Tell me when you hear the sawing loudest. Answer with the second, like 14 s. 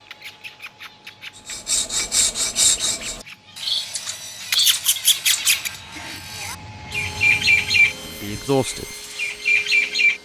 3 s.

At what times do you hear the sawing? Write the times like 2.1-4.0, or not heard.
1.4-10.2.